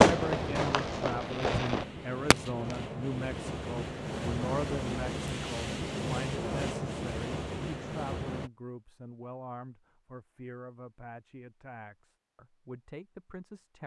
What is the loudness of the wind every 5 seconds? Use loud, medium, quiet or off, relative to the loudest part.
loud, loud, off.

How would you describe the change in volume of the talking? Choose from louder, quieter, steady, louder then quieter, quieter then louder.
quieter.